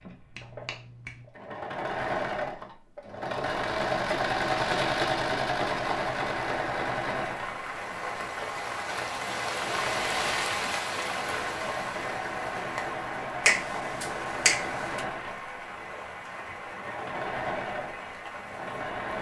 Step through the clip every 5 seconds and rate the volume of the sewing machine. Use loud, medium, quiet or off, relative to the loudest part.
loud, loud, medium, medium.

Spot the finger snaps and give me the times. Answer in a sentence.
You can hear the finger snaps from 0.3 to 1.3 s and from 13.4 to 15.1 s.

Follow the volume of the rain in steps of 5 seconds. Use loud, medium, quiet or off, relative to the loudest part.
off, loud, loud, medium.